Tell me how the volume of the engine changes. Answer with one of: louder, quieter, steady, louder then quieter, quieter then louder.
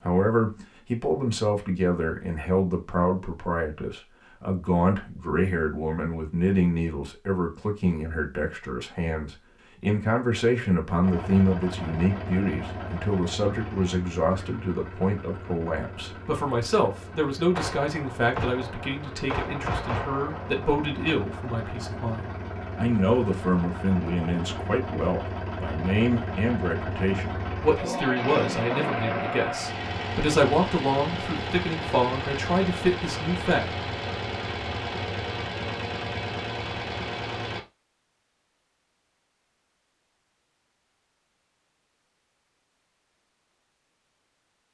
louder.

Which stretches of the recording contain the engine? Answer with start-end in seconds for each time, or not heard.
11.0-37.6.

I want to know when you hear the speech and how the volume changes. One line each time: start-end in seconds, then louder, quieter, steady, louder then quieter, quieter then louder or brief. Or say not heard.
0.0-33.9 steady.